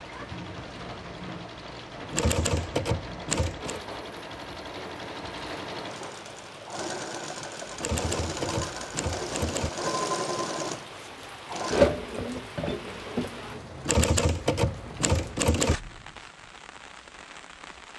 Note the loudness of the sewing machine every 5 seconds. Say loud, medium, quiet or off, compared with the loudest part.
quiet, medium, loud, off.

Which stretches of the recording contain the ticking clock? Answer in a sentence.
The ticking clock can't be heard in this clip.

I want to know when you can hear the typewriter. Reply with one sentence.
The typewriter can be heard from 2.1 to 3.8 s, from 7.8 to 9.7 s and from 13.8 to 15.8 s.